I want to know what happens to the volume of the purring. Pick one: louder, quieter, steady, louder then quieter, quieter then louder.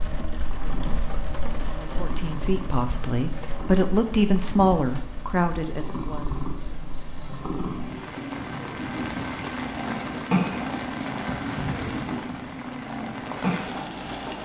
louder.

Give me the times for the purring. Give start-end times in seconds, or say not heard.
0.1-14.3.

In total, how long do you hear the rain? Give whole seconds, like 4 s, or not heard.
14 s.